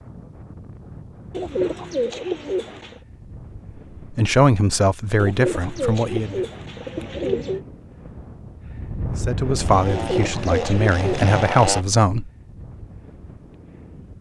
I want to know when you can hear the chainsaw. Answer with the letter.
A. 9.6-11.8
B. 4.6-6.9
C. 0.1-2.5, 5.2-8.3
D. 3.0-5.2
A.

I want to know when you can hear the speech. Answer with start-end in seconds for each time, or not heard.
4.1-6.5, 9.2-12.3.